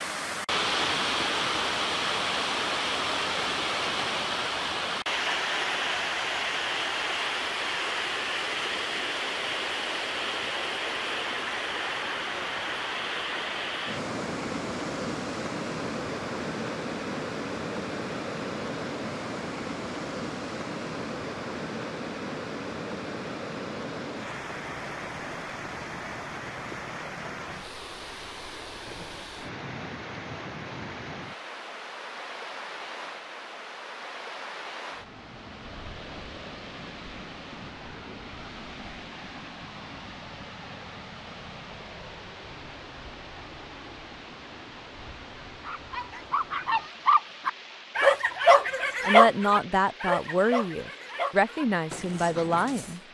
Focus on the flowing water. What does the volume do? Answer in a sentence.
The loudness of the flowing water goes down.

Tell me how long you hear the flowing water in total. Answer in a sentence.
You can hear the flowing water for 53 seconds altogether.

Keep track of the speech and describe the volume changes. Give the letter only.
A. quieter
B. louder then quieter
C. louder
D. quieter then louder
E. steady
D.